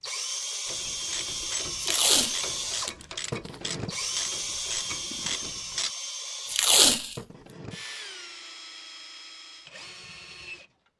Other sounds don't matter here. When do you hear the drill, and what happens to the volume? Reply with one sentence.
You can hear the drill from 0.0 to 10.9 s, getting quieter.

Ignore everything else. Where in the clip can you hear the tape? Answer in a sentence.
You can hear the tape from 1.8 to 3.5 s and from 6.5 to 7.2 s.